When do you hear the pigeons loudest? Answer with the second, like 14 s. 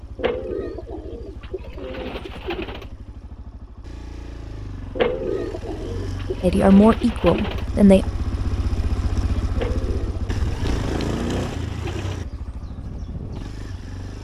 5 s.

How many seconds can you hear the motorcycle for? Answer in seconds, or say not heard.
14 s.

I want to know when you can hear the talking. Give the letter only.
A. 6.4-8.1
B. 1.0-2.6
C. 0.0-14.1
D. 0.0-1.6
A.